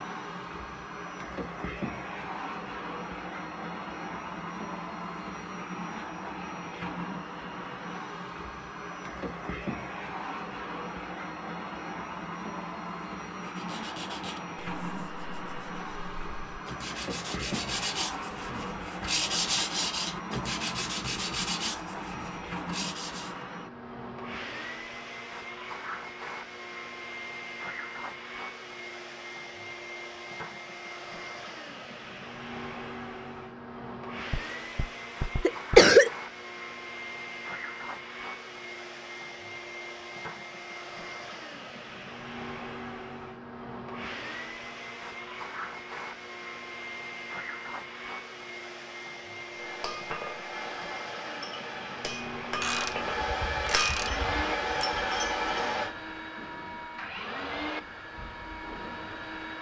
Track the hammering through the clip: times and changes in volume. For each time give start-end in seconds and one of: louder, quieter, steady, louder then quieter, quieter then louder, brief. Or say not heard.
49.5-56.0 louder.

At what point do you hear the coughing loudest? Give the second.
36 s.